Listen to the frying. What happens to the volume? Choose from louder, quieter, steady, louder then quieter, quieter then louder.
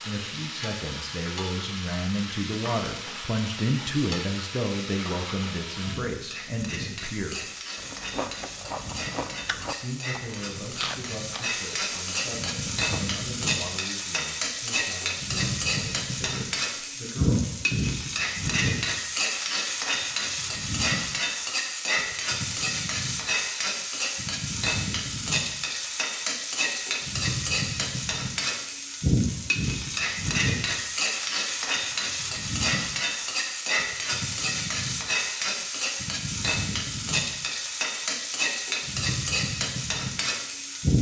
louder.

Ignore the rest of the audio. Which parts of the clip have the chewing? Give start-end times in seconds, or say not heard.
7.8-13.0.